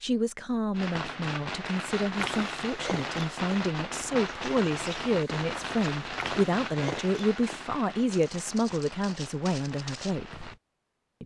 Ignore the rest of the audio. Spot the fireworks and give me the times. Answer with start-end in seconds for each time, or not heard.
0.7-10.6.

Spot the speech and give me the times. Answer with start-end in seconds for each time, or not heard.
0.0-10.4.